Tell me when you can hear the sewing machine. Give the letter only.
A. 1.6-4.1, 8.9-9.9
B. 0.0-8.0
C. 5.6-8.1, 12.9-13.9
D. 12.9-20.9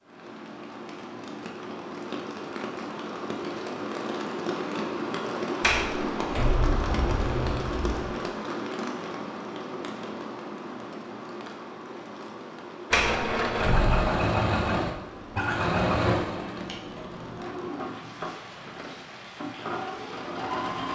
D.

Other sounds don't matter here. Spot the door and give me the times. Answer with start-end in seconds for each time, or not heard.
5.6-8.1, 12.9-13.9.